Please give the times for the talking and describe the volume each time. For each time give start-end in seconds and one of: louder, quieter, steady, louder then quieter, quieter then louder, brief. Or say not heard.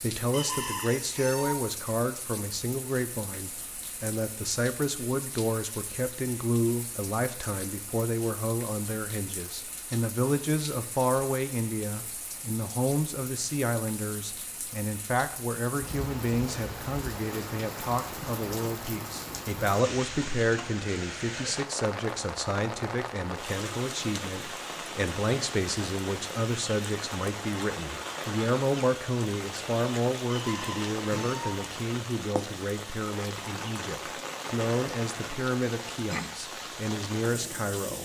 0.0-38.0 steady.